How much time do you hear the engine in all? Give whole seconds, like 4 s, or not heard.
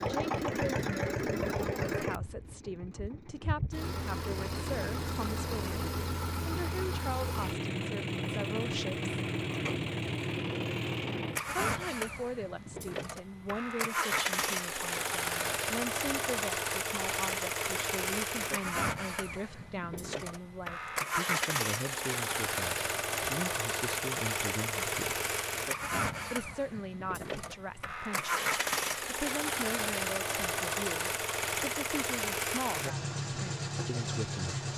35 s.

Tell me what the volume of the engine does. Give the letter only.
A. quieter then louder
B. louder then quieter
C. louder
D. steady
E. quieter
D.